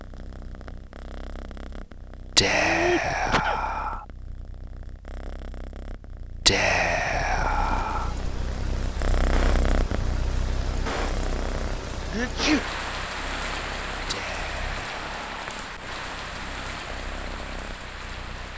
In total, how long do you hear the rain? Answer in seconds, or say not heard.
11 s.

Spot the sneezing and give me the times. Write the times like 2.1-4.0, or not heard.
2.6-3.6, 12.1-12.6.